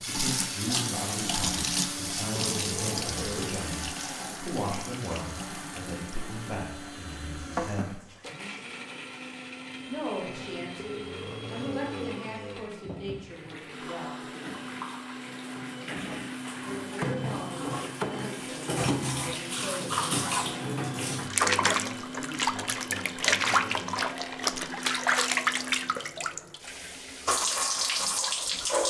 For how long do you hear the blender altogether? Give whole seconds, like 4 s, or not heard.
26 s.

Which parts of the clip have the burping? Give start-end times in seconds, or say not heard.
2.5-3.6, 10.8-12.7, 24.0-24.6.